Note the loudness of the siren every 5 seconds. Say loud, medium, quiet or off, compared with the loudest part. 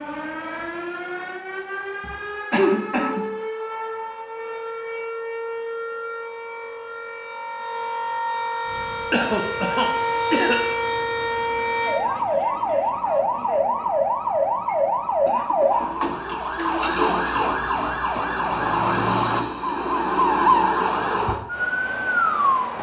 medium, medium, loud, loud, loud.